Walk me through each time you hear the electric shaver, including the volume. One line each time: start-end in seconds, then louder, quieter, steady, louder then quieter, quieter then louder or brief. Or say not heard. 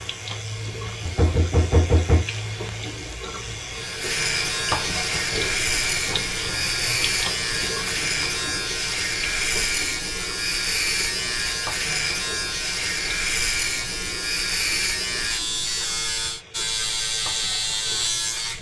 0.0-18.5 louder.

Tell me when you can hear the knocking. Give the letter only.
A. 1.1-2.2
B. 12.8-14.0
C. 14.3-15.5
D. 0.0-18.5
A.